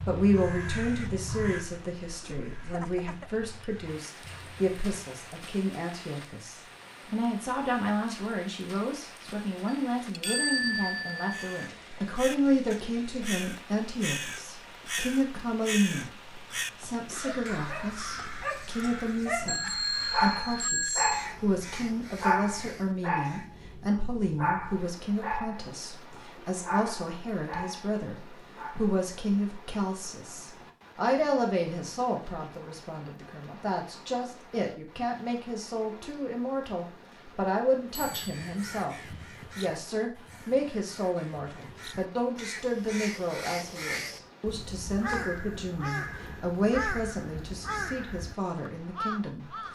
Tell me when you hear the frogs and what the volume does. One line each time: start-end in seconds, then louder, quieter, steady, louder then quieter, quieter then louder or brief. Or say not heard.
not heard.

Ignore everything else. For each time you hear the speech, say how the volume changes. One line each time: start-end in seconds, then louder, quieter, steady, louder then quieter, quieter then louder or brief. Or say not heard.
0.1-49.7 steady.